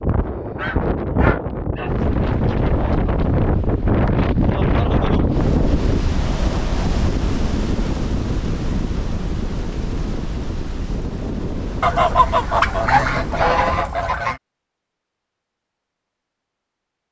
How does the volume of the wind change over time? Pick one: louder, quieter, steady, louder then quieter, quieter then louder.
quieter.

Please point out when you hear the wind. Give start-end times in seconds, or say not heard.
0.0-13.8.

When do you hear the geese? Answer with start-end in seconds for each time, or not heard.
0.2-1.9, 11.8-14.4.